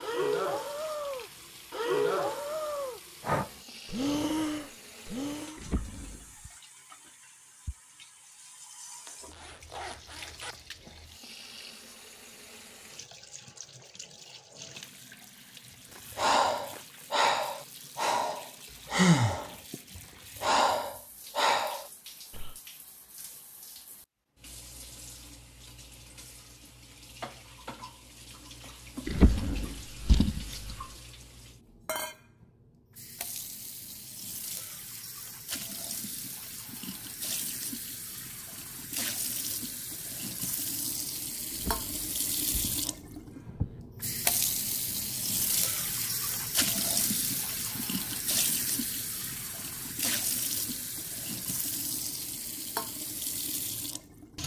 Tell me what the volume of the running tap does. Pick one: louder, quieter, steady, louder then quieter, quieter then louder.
louder.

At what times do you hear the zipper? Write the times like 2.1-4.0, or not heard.
8.9-10.6.